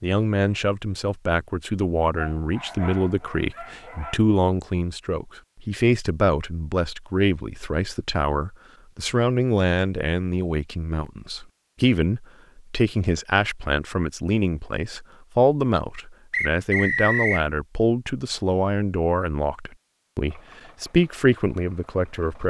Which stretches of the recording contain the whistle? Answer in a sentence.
The whistle can be heard from 16.3 to 17.4 s.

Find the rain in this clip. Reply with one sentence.
You can't hear the rain here.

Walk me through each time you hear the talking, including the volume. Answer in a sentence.
The talking can be heard from 0.0 to 22.4 s, at a steady volume.